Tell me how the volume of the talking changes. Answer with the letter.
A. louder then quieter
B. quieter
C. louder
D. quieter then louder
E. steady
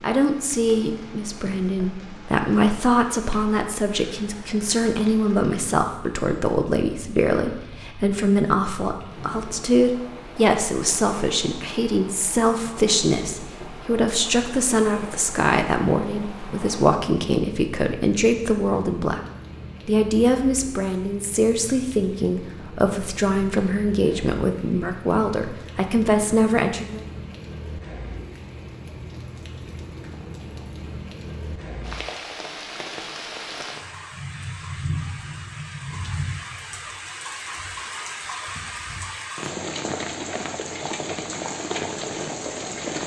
E.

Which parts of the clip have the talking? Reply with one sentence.
You can hear the talking from 0.0 to 19.2 s and from 19.9 to 27.1 s.